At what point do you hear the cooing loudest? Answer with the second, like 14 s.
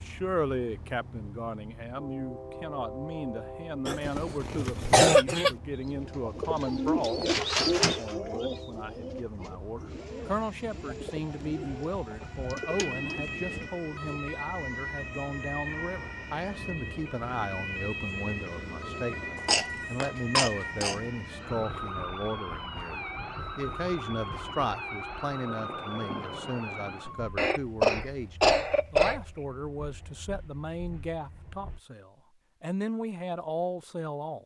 8 s.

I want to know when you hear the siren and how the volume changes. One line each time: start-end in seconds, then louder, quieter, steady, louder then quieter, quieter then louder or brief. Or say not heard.
12.1-27.4 steady.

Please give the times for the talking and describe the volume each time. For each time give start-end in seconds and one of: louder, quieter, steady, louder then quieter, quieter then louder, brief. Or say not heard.
0.0-34.4 steady.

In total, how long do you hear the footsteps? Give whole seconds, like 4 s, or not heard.
not heard.